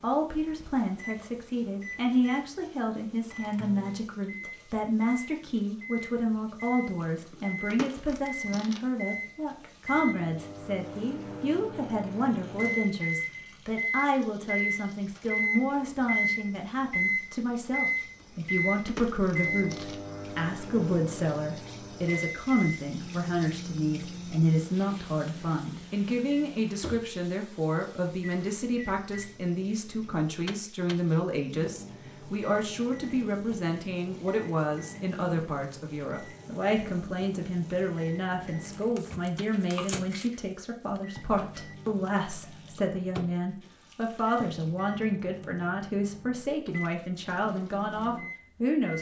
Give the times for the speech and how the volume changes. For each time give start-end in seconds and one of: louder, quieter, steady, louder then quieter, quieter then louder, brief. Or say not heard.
0.0-48.9 steady.